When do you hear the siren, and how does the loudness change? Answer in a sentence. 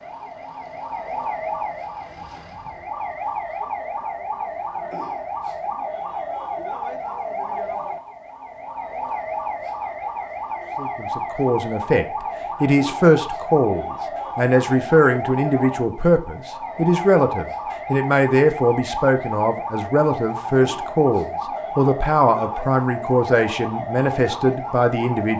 The siren can be heard from 0.0 to 25.3 s, at a steady volume.